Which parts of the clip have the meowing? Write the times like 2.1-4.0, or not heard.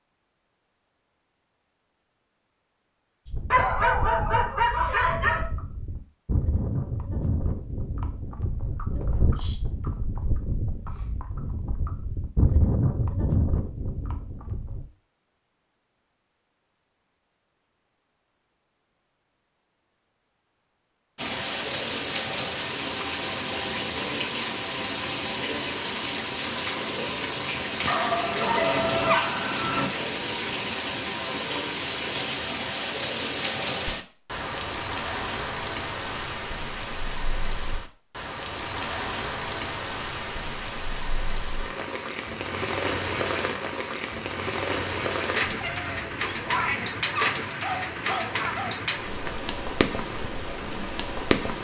45.4-47.0.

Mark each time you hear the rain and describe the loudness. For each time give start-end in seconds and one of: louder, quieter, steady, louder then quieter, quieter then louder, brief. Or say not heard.
21.1-51.5 steady.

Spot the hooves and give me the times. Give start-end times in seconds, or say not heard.
3.2-14.8.